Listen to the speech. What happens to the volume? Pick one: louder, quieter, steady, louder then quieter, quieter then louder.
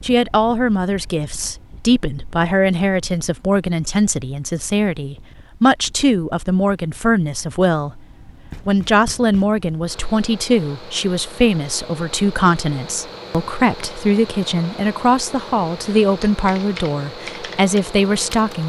steady.